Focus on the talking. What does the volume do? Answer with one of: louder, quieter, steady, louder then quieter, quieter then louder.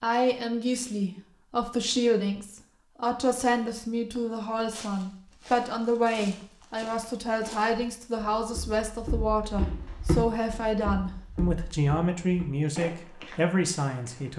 steady.